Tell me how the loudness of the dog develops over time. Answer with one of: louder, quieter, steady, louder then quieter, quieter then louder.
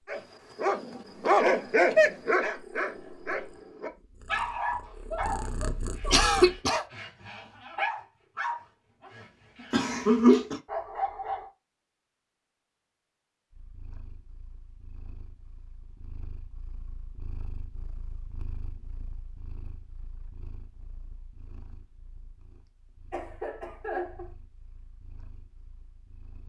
quieter.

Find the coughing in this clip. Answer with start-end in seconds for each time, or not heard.
6.1-6.8, 9.7-10.6, 23.1-24.3.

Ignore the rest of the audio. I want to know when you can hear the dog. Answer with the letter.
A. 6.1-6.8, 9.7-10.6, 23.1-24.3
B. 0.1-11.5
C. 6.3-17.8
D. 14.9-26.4
B.